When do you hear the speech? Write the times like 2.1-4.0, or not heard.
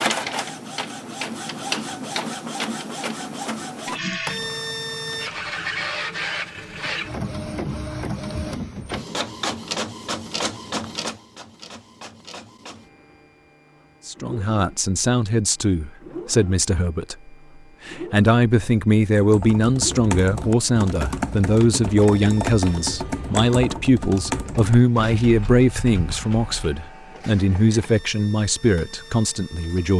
14.1-29.9.